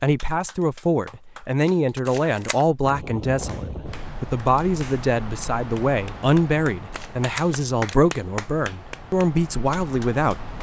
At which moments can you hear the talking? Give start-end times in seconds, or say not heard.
0.0-10.5.